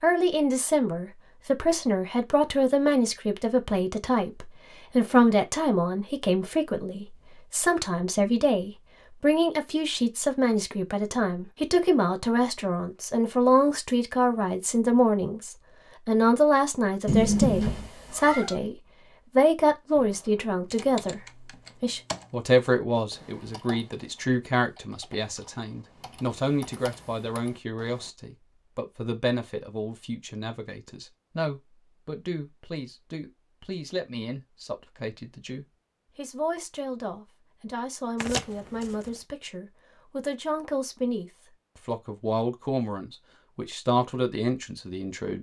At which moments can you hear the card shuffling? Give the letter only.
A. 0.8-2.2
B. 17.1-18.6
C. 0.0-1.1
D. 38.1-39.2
D.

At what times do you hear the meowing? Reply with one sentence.
You can hear the meowing from 17.1 to 18.6 s.